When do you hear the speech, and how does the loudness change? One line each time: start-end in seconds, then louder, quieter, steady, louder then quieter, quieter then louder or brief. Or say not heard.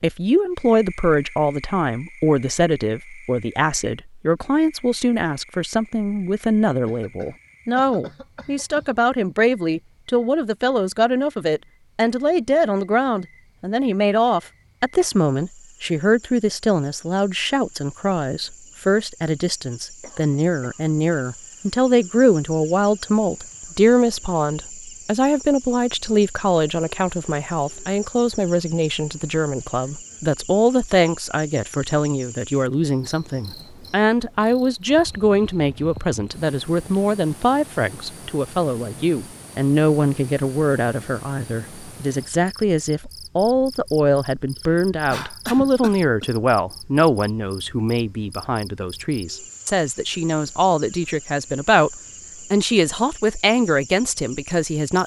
0.0-55.0 steady.